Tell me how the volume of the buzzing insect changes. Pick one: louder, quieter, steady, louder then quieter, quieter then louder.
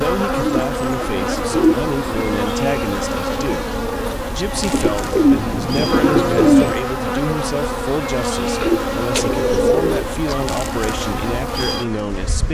steady.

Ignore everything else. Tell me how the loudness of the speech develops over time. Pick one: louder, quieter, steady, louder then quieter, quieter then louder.
steady.